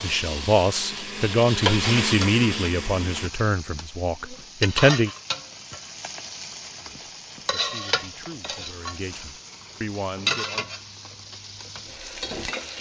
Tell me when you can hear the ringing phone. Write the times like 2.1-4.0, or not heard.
not heard.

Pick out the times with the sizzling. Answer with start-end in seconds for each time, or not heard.
0.0-12.7.